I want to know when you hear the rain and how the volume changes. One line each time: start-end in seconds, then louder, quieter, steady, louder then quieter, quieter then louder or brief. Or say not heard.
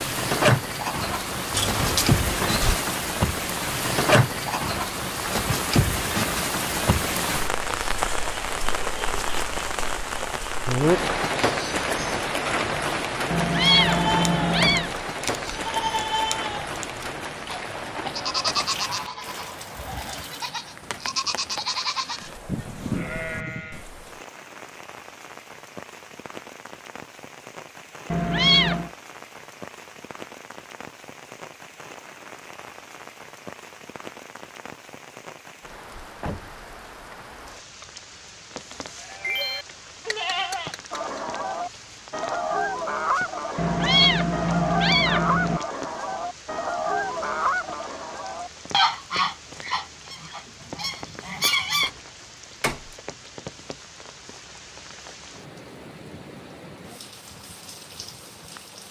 0.0-58.8 quieter.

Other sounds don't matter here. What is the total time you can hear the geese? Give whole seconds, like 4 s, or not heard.
11 s.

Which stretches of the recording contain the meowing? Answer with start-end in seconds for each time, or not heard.
13.3-14.9, 28.1-28.9, 43.5-45.6.